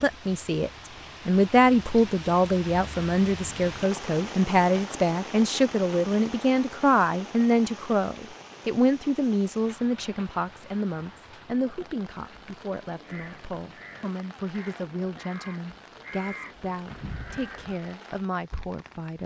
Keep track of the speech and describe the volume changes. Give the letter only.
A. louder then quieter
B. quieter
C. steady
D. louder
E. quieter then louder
B.